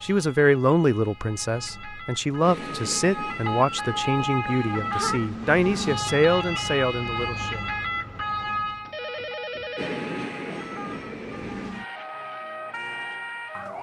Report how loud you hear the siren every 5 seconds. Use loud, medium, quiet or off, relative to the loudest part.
loud, loud, medium.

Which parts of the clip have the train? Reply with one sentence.
You can hear the train from 2.4 to 4.2 s and from 9.8 to 11.8 s.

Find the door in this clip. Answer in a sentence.
You can't hear the door here.